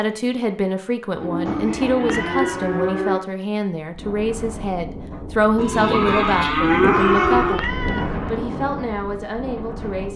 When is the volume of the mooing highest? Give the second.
7 s.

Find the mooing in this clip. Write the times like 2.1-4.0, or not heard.
1.1-3.2, 5.5-7.5.